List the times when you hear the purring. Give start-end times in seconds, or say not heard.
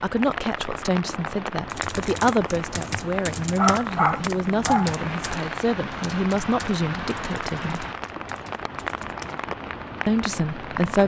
not heard.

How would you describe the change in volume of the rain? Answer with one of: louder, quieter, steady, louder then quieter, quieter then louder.
steady.